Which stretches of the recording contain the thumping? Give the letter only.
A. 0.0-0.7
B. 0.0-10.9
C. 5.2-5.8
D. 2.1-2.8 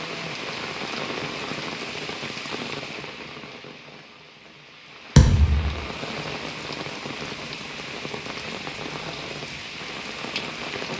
C.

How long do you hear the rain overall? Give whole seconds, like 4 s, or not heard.
11 s.